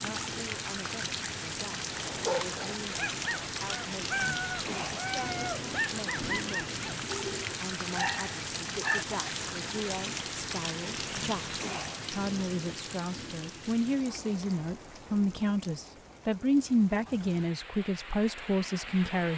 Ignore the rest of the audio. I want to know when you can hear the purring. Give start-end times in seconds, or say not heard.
not heard.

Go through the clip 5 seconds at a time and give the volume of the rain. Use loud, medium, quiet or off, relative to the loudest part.
loud, loud, loud, medium.